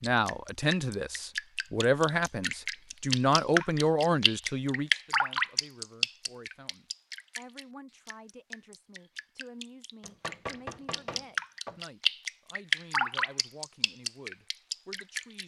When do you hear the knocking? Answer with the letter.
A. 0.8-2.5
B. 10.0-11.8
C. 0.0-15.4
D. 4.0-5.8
B.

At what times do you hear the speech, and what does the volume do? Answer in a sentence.
The speech can be heard from 0.0 to 15.4 s, getting quieter.